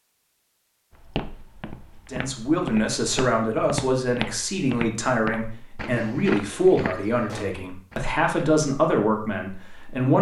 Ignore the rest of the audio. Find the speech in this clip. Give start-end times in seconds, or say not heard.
2.1-10.1.